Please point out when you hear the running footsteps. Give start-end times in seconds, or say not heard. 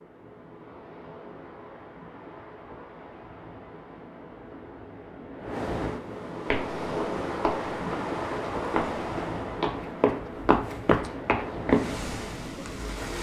6.5-11.9.